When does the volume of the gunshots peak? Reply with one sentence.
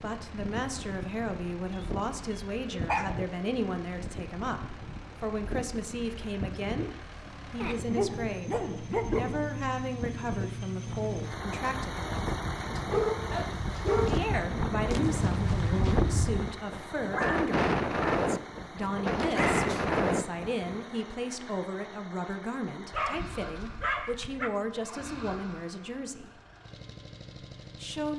The volume of the gunshots peaks at 15 seconds.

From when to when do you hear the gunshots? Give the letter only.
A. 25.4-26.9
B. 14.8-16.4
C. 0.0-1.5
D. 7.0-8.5
B.